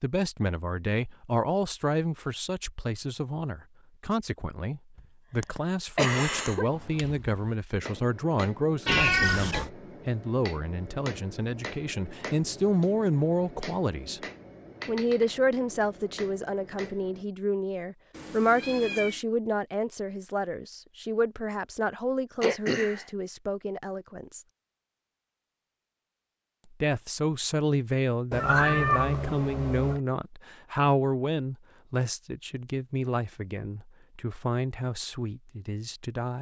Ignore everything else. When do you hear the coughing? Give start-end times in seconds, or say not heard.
5.0-6.7, 22.4-23.1.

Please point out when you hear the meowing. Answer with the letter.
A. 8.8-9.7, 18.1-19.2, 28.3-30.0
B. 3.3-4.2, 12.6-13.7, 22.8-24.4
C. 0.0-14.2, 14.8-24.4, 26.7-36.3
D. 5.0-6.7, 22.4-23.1
A.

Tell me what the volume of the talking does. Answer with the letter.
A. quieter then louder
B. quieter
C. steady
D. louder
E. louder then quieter
C.